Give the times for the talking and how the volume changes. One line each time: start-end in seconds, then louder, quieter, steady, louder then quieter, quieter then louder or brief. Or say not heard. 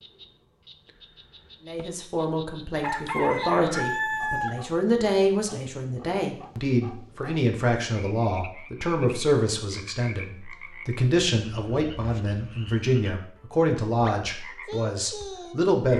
1.6-15.9 steady.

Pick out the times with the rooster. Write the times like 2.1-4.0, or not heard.
2.8-4.5.